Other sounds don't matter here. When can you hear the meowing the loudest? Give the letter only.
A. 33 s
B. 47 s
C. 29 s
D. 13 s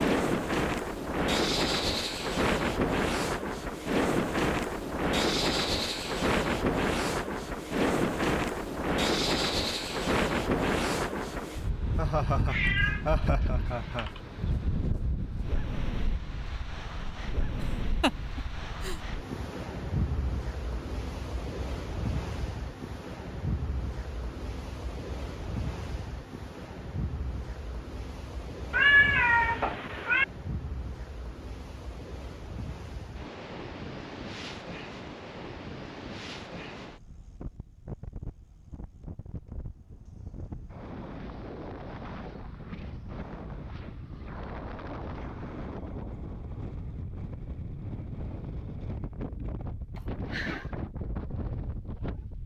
C.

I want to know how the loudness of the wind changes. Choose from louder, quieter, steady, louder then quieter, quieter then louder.
quieter.